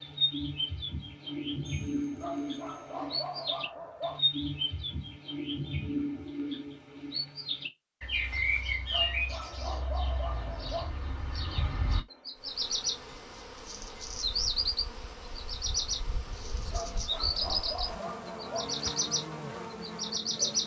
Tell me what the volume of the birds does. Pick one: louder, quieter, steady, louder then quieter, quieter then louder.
steady.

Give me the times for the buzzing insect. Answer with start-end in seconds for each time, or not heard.
12.3-20.6.